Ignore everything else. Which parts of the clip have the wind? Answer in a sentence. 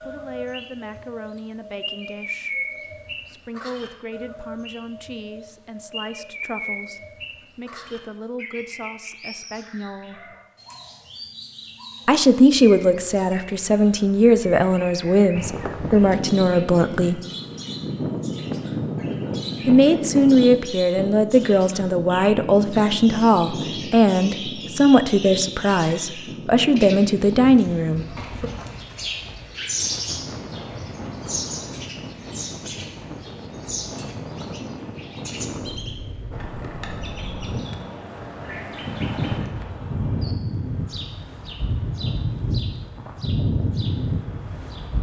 You can hear the wind from 15.3 to 44.9 s.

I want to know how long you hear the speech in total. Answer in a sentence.
The speech can be heard for 24 seconds in total.